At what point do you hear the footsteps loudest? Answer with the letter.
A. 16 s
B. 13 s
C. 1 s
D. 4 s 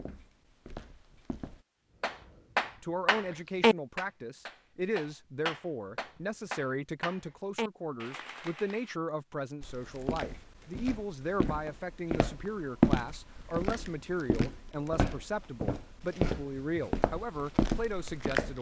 B.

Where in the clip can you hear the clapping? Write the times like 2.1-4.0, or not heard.
2.0-8.9.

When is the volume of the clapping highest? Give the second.
4 s.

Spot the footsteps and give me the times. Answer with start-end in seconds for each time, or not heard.
0.0-1.6, 9.6-18.5.